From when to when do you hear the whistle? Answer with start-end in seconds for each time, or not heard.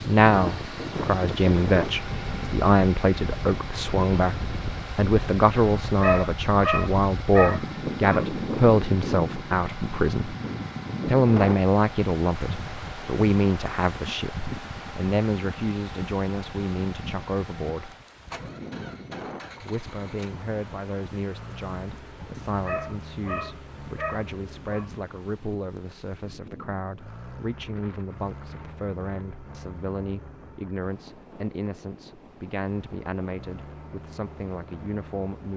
not heard.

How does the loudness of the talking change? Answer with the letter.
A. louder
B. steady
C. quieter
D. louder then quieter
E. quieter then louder
C.